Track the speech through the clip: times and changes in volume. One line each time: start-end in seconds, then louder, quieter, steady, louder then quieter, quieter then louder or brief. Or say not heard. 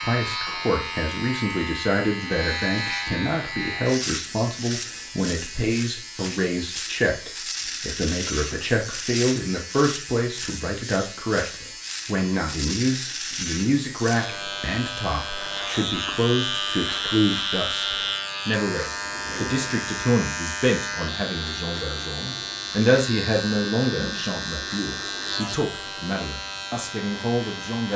0.0-27.9 steady.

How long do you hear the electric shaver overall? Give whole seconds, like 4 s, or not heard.
28 s.